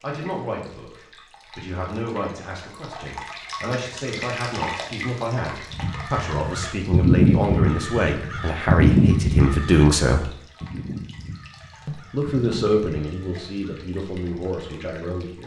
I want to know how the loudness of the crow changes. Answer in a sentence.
The volume of the crow goes down.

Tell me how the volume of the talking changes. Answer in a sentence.
The loudness of the talking goes up, then down.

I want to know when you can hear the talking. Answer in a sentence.
The talking can be heard from 0.0 to 10.3 s and from 11.8 to 15.4 s.